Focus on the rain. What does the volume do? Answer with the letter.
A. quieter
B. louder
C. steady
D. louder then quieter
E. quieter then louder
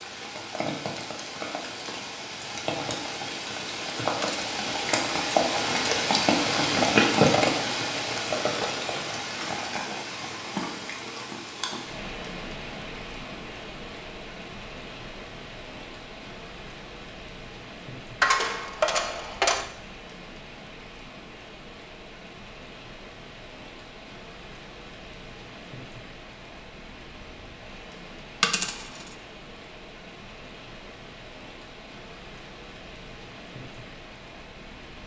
A.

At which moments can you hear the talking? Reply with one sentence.
The talking can't be heard in this clip.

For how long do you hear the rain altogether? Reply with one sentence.
The rain can be heard for 35 seconds in total.